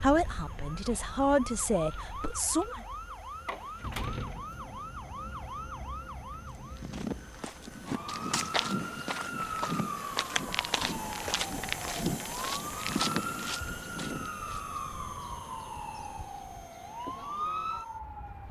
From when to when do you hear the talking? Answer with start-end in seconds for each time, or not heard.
0.0-2.8.